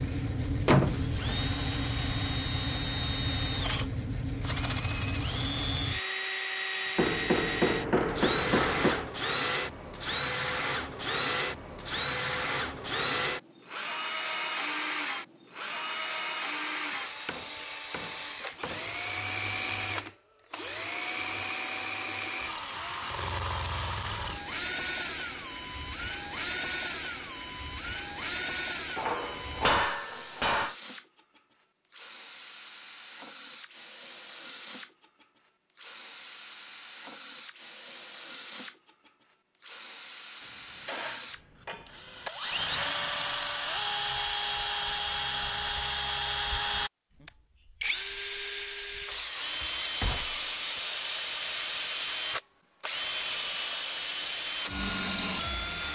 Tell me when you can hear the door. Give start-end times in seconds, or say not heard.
0.7-1.4.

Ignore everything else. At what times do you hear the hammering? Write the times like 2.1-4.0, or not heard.
7.0-9.1, 17.2-18.9, 28.9-30.8, 40.4-42.3, 49.1-50.8.